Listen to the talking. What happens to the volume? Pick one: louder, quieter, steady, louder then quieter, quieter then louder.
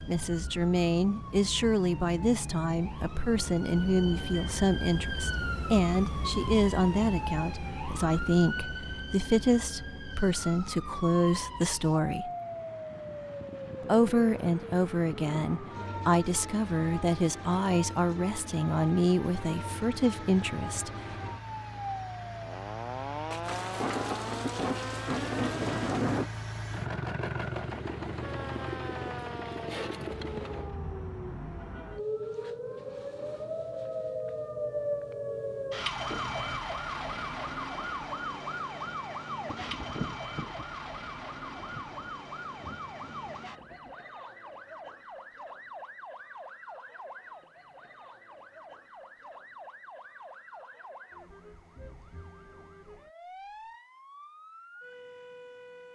steady.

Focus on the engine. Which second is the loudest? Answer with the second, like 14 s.
27 s.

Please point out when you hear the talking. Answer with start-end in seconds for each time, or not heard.
0.0-12.3, 13.8-20.9.